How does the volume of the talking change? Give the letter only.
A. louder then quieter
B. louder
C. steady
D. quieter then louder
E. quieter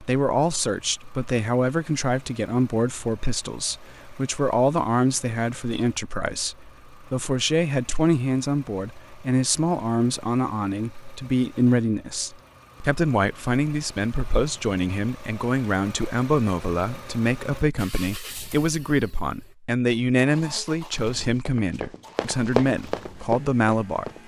C.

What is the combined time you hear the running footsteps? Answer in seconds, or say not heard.
3 s.